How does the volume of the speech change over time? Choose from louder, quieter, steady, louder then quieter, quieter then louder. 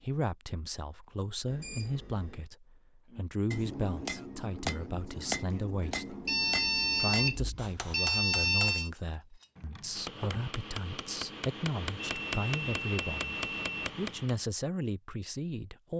steady.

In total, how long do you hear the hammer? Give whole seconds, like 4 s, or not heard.
11 s.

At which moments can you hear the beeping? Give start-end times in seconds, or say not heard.
1.4-2.5, 6.2-8.9, 12.1-13.9.